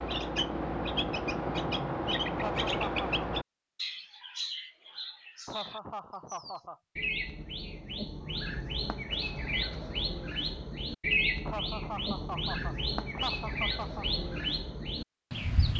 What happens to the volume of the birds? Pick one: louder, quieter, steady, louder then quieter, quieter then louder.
quieter then louder.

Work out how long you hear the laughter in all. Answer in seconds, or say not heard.
5 s.